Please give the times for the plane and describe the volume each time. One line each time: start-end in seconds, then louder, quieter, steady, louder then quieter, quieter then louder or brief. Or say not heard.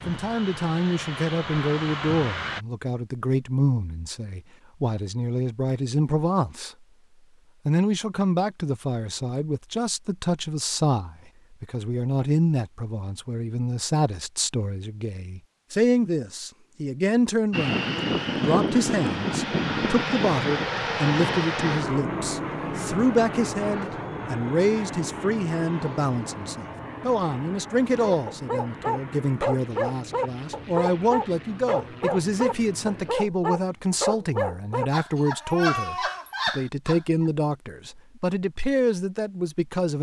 0.0-2.6 brief
17.5-33.1 quieter.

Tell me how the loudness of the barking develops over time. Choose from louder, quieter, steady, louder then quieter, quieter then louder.
steady.